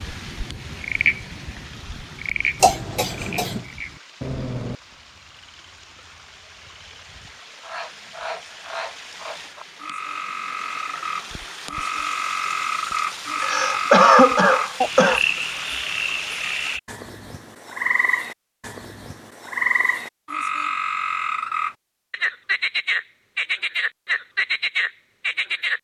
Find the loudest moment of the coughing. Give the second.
14 s.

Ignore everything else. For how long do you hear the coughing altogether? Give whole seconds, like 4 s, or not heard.
3 s.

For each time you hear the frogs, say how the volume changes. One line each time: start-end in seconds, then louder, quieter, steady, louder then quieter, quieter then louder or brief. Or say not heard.
0.0-25.7 quieter then louder.